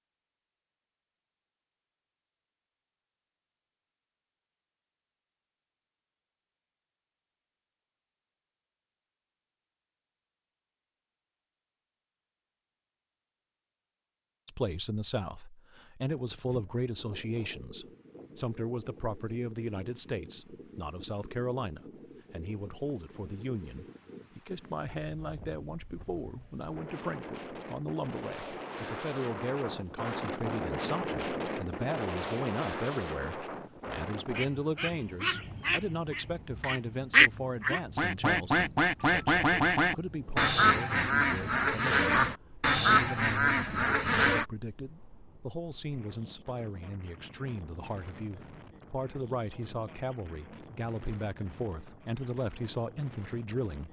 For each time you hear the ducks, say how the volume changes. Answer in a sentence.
You can hear the ducks from 34.3 to 44.5 s, getting louder.